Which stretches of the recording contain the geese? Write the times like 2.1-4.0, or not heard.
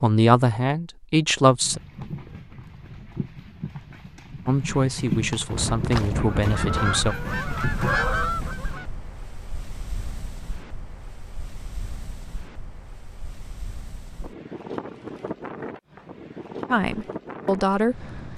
5.9-8.8.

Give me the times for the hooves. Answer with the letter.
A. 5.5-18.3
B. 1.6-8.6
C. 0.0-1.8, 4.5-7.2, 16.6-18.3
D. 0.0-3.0
B.